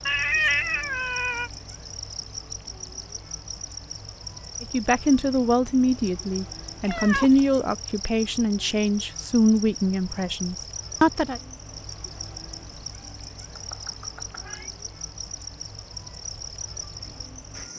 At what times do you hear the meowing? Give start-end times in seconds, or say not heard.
0.1-1.5, 6.8-7.5, 13.6-14.7.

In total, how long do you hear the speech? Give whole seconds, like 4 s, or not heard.
7 s.